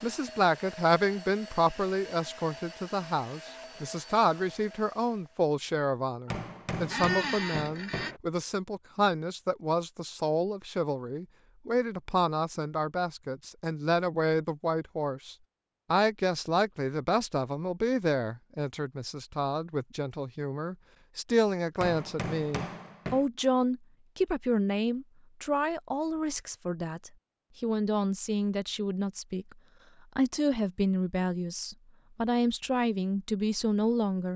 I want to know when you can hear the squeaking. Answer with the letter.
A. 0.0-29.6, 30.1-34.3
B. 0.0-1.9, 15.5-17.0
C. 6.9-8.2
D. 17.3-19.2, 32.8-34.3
C.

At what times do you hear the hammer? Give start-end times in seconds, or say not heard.
6.2-8.2, 21.8-23.2.